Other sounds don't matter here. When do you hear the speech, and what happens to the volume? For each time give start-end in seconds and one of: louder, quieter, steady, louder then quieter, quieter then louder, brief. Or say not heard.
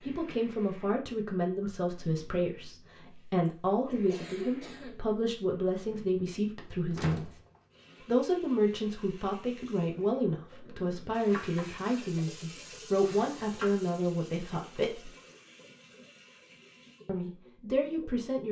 0.0-7.3 steady
8.1-15.1 steady
17.1-18.4 brief.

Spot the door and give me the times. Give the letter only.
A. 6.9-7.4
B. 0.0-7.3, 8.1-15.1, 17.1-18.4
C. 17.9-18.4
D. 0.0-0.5
A.